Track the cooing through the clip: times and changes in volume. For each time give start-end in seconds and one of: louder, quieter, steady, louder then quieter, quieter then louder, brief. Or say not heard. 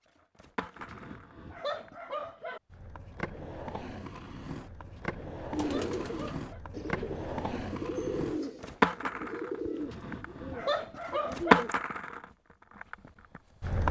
5.5-11.8 quieter.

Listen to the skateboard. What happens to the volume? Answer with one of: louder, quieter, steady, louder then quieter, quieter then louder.
louder.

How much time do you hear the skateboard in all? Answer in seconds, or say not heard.
14 s.